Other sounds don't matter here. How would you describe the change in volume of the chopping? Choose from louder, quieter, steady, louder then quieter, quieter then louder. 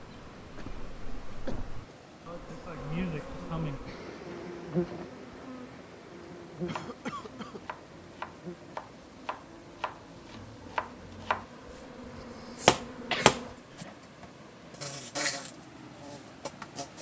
louder.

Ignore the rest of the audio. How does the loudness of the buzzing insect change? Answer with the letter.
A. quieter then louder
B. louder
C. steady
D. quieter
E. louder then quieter
A.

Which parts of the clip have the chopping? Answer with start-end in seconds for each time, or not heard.
6.5-13.8.